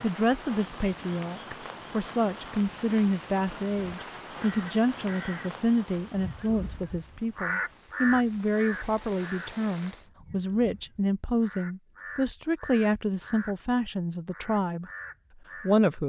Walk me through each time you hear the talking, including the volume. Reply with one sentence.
You can hear the talking from 0.0 to 14.9 s, at a steady volume; and briefly from 15.6 to 16.0 s.